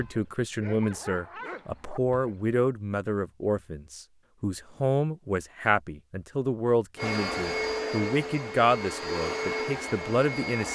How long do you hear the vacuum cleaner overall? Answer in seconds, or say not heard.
4 s.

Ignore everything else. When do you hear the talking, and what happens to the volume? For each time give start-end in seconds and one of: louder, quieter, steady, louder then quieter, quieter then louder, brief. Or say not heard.
0.0-10.6 steady.